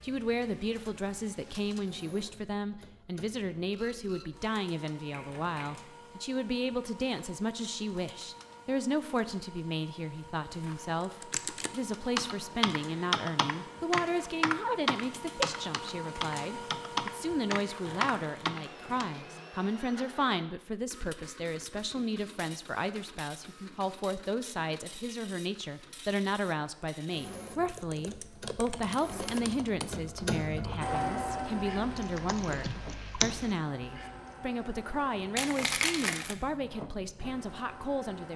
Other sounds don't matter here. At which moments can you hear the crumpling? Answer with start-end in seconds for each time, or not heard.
5.1-5.8, 17.9-19.1, 35.4-36.4.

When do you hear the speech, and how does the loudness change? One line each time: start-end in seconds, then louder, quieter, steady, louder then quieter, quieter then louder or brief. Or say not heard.
0.0-38.3 steady.